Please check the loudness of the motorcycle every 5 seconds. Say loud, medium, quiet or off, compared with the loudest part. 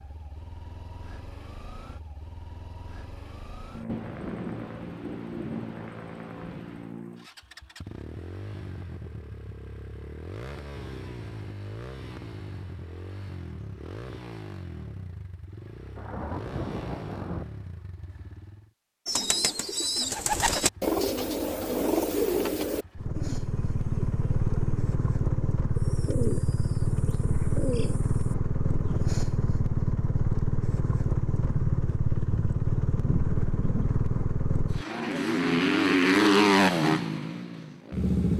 quiet, quiet, quiet, quiet, medium, medium, medium, loud.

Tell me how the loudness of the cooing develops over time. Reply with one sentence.
The loudness of the cooing goes down.